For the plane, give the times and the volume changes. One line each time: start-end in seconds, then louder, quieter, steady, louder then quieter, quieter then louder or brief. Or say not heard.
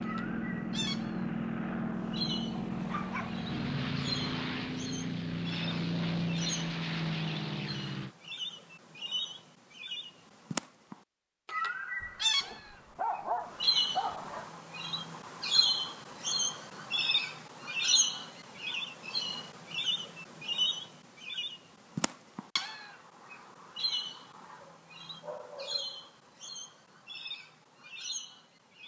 0.0-8.2 steady.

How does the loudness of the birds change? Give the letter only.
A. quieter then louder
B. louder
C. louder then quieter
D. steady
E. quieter
C.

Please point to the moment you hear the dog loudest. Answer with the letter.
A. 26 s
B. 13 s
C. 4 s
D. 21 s
B.